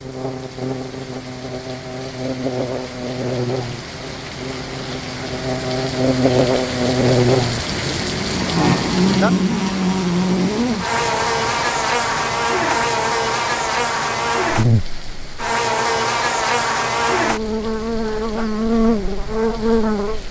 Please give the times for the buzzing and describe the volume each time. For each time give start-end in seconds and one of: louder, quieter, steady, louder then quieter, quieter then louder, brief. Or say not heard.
0.0-20.2 louder.